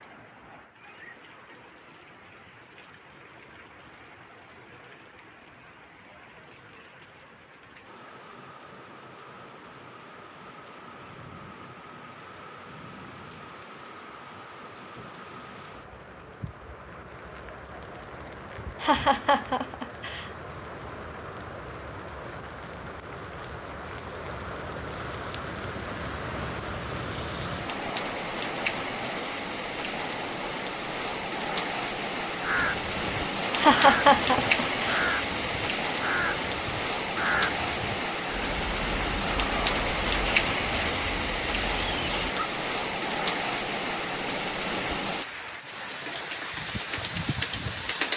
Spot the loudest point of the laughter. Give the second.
34 s.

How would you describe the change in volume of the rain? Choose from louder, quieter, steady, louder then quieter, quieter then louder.
louder.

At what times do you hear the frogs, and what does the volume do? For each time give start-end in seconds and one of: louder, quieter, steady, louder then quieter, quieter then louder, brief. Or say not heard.
not heard.